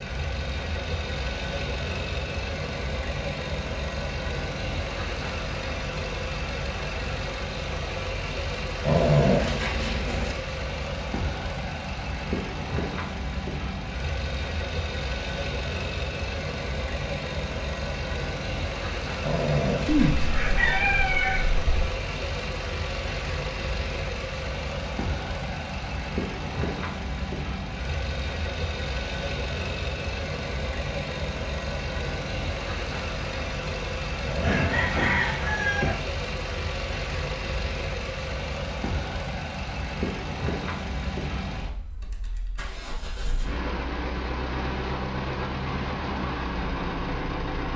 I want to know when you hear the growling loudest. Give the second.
9 s.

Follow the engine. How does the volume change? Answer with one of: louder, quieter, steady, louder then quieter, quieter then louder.
steady.